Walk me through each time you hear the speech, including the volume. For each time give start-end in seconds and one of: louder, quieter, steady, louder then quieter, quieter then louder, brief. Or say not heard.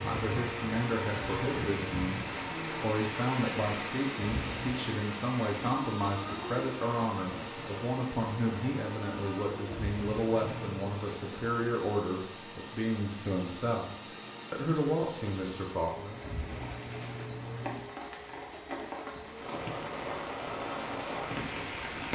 0.1-13.9 steady
14.5-16.2 brief.